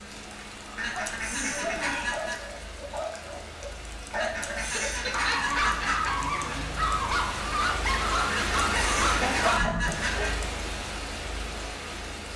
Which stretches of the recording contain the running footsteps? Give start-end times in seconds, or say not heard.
not heard.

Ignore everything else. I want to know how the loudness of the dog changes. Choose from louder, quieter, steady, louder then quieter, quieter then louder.
louder.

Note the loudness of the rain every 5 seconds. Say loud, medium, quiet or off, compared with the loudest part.
medium, loud, loud.